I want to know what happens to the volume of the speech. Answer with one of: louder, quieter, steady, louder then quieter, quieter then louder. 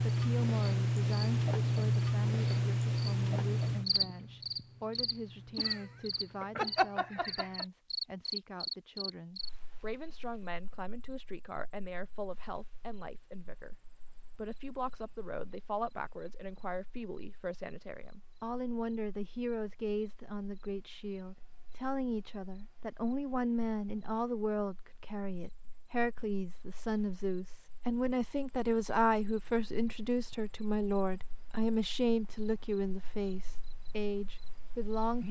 louder.